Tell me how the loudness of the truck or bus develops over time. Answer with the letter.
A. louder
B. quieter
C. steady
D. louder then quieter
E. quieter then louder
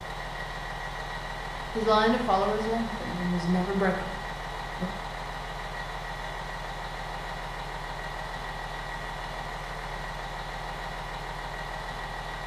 C.